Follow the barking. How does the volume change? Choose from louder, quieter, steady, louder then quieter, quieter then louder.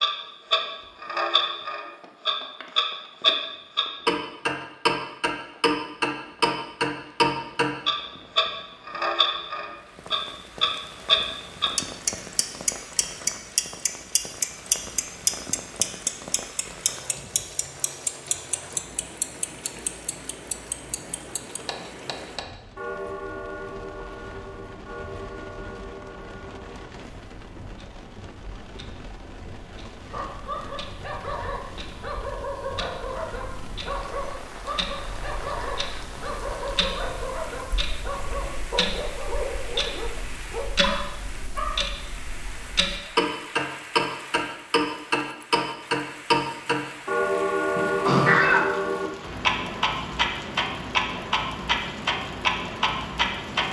steady.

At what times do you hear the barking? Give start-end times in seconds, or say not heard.
30.1-41.8.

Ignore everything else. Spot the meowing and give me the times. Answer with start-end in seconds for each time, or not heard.
47.8-48.6.